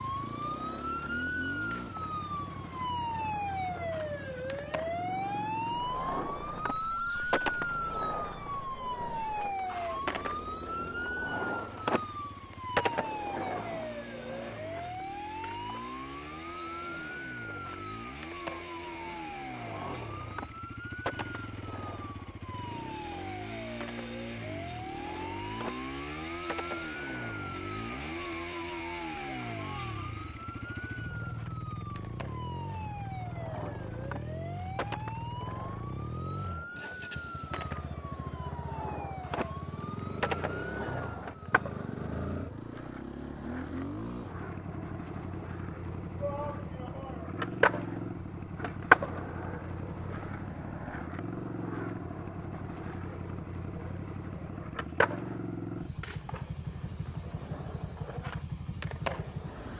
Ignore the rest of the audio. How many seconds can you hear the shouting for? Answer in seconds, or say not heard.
2 s.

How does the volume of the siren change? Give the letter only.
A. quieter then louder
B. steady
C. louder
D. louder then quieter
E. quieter
E.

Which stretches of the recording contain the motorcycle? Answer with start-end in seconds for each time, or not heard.
0.0-59.7.